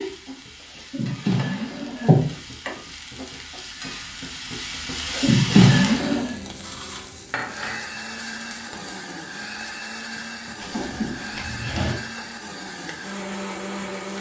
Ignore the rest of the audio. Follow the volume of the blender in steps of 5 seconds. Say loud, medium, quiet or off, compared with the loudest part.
off, loud, loud.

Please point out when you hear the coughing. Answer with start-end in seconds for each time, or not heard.
not heard.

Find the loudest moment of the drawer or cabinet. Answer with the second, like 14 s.
6 s.